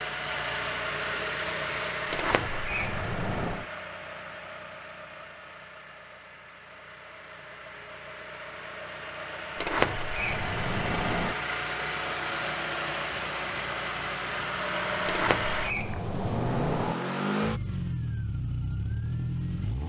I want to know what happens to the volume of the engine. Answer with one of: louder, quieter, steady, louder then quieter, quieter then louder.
quieter then louder.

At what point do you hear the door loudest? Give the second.
10 s.